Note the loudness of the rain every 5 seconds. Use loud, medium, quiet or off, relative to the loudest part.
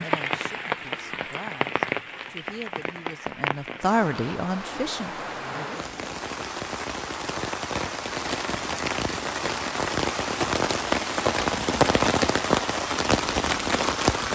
medium, medium, loud.